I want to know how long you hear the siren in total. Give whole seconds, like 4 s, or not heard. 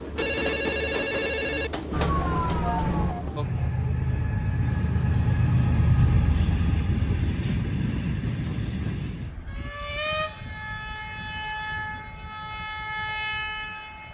2 s.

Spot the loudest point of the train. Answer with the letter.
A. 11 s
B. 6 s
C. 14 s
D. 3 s
B.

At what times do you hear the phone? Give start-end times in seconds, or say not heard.
0.1-1.7.